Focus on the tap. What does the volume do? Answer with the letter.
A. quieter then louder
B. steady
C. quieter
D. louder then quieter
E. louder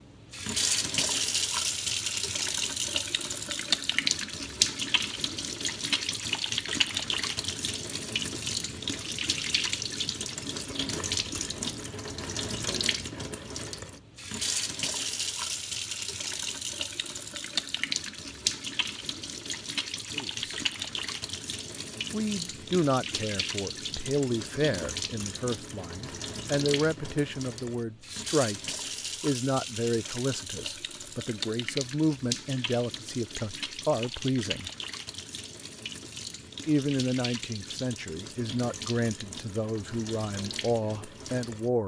C.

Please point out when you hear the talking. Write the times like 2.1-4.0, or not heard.
20.1-20.6, 22.1-34.7, 36.6-41.8.